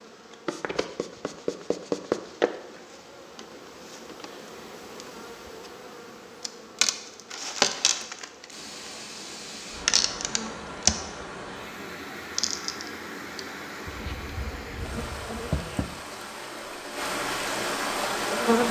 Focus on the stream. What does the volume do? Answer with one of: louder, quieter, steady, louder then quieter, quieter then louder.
louder.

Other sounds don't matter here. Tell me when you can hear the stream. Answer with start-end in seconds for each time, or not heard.
8.5-18.6.